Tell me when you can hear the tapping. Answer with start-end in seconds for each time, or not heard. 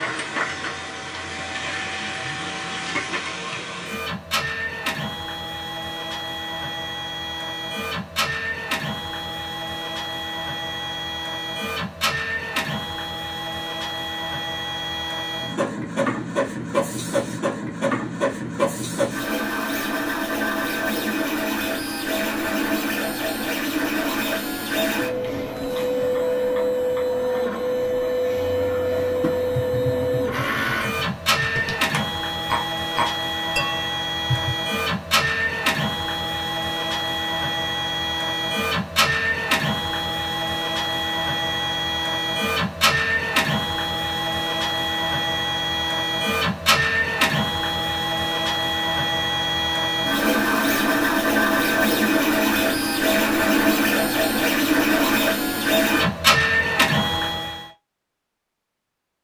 28.9-34.5.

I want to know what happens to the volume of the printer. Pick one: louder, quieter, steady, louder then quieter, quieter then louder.
louder.